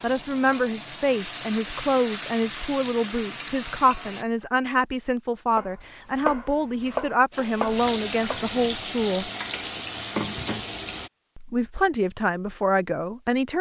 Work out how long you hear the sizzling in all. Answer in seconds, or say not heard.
8 s.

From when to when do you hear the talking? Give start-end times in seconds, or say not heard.
0.0-9.3, 11.3-13.5.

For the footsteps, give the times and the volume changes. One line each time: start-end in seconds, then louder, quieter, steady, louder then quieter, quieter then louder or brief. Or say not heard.
not heard.